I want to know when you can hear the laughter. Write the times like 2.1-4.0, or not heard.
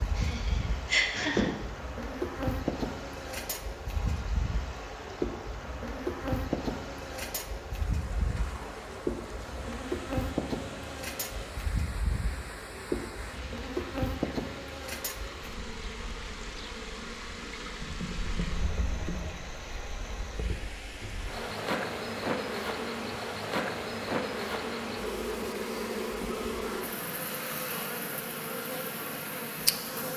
0.1-1.4.